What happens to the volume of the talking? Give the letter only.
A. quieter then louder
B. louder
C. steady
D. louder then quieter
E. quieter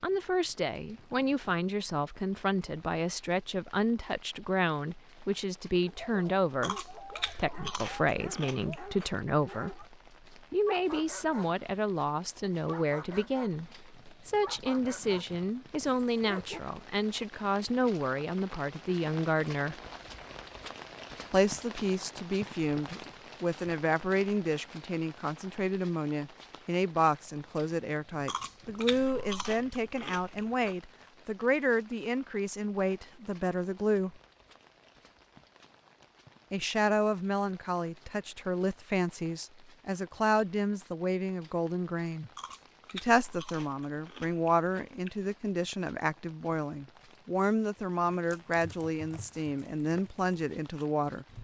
C.